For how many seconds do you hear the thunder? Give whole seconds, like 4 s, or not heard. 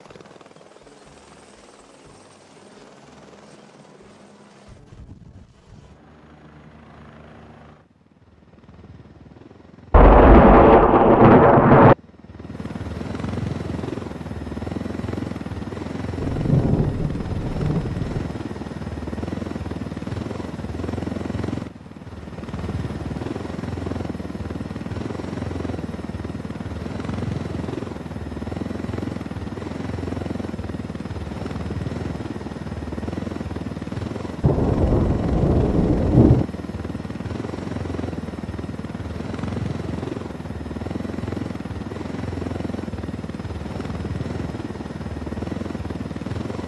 6 s.